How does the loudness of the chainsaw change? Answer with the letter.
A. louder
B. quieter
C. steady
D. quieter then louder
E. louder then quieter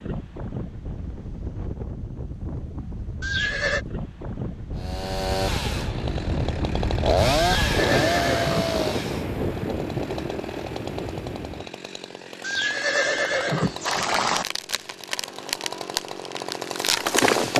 D.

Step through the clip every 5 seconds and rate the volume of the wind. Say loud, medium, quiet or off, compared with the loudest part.
medium, loud, medium, off.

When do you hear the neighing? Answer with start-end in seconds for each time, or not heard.
3.2-3.9, 7.5-8.8, 12.4-14.4.